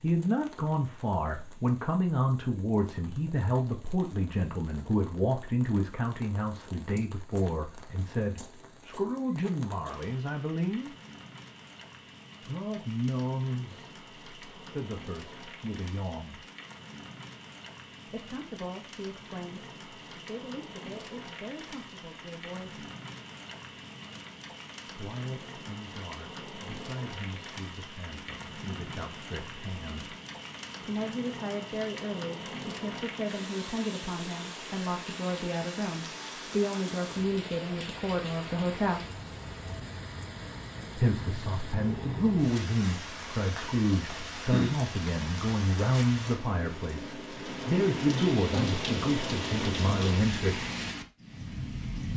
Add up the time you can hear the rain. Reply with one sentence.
You can hear the rain for 52 seconds altogether.